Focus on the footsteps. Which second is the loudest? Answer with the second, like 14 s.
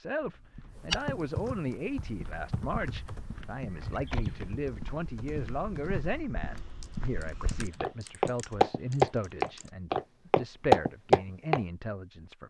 11 s.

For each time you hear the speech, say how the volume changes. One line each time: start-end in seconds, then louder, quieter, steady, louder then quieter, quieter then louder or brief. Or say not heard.
0.0-12.4 steady.